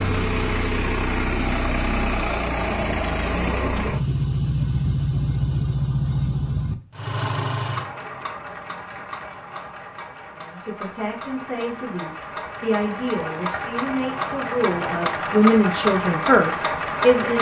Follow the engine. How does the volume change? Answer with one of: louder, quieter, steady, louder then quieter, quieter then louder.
quieter then louder.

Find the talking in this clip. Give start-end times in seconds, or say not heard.
10.3-17.3.